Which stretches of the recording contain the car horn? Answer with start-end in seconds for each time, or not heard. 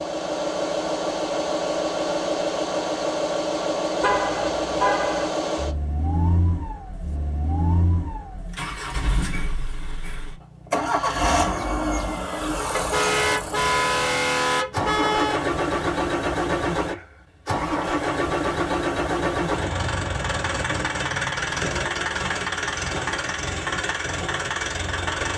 4.0-5.3, 12.7-15.4.